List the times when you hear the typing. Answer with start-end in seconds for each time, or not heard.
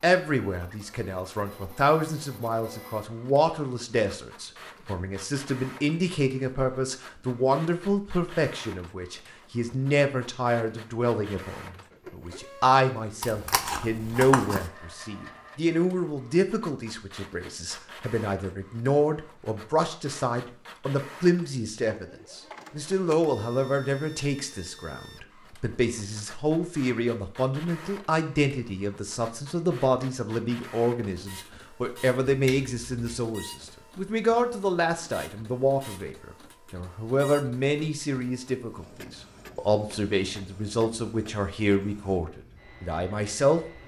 not heard.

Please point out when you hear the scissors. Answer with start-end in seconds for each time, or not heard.
13.2-14.7, 32.2-33.2.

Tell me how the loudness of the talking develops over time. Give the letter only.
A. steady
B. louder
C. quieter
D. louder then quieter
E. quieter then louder
A.